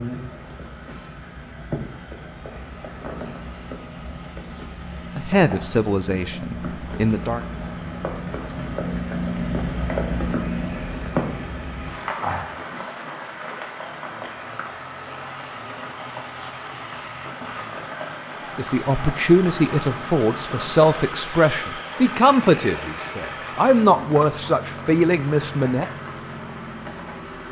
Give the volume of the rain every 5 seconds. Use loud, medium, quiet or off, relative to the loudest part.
medium, loud, loud, medium, medium, medium.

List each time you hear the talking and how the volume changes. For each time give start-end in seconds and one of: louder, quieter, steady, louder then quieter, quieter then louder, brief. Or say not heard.
5.2-7.4 brief
18.6-25.9 steady.